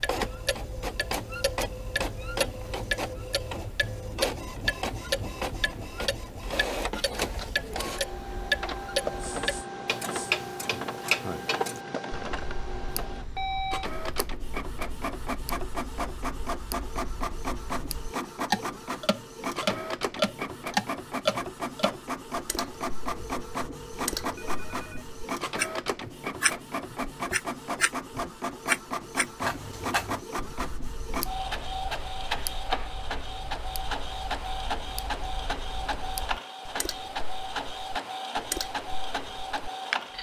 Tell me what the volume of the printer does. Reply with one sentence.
The loudness of the printer stays about the same.